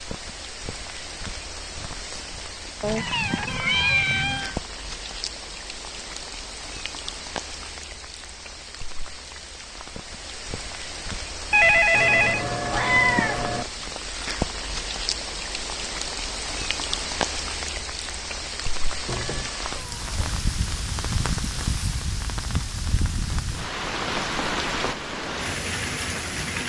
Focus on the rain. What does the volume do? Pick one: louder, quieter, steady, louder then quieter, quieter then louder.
louder.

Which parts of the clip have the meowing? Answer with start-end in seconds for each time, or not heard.
2.8-4.5, 11.9-13.7, 19.1-20.4.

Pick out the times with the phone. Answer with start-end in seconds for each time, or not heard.
11.5-12.4.